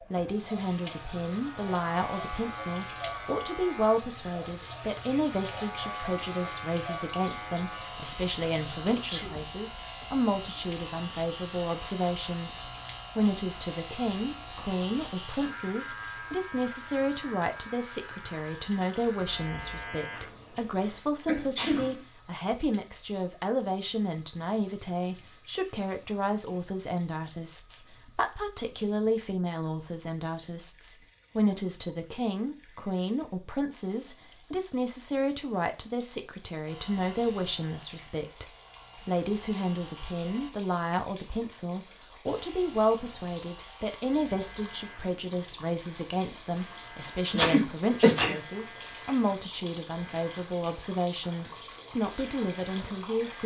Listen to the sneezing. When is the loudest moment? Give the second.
48 s.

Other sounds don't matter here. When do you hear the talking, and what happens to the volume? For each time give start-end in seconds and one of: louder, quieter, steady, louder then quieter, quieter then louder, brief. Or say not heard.
0.0-53.4 steady.